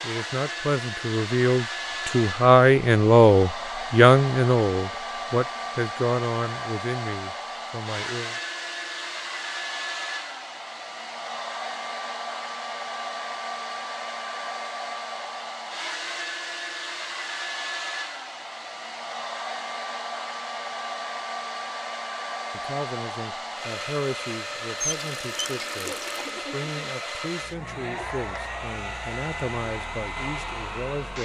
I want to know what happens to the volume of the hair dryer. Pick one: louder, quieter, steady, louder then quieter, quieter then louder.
steady.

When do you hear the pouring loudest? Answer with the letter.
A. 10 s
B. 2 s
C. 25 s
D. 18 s
C.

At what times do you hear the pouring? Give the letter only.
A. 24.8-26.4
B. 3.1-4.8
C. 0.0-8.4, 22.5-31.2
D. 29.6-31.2
A.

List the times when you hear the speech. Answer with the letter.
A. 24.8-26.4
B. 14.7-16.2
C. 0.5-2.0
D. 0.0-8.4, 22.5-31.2
D.